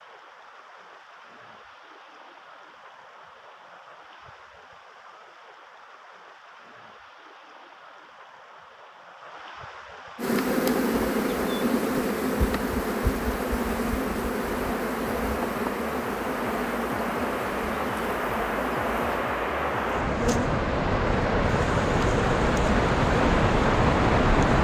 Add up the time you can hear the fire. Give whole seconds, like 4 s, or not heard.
not heard.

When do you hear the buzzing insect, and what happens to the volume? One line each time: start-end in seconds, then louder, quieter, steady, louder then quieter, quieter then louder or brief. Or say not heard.
10.2-24.5 quieter.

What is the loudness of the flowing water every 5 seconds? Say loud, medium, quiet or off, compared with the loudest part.
quiet, quiet, quiet, medium, loud.